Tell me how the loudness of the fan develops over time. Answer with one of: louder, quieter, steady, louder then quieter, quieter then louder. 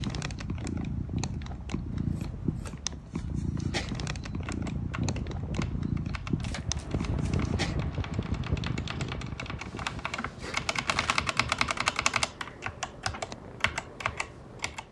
louder then quieter.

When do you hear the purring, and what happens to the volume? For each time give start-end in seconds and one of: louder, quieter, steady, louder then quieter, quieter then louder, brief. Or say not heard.
0.0-14.8 quieter.